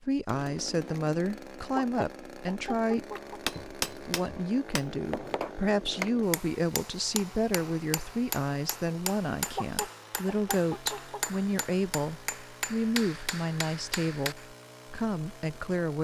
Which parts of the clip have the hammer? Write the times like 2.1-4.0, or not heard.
3.1-14.4.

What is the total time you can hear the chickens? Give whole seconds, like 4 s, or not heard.
3 s.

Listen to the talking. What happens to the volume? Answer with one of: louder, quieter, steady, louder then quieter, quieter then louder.
steady.